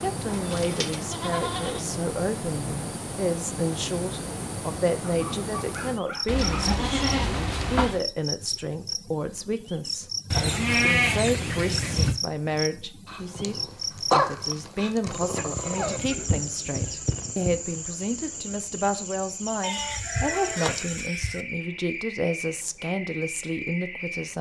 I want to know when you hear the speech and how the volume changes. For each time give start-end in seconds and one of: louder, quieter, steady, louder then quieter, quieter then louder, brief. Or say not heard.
0.0-24.3 steady.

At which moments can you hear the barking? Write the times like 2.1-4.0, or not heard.
5.0-6.7, 13.1-16.0.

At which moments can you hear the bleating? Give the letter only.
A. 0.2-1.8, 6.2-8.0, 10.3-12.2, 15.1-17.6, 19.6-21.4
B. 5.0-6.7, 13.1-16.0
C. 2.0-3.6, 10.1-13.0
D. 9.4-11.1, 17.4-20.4
A.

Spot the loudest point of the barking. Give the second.
14 s.